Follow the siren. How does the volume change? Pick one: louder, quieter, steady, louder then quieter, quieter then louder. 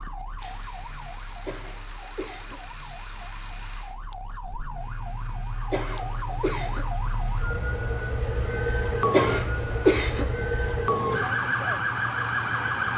louder.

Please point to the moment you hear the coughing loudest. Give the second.
10 s.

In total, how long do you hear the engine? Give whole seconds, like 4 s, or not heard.
13 s.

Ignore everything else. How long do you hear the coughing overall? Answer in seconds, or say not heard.
4 s.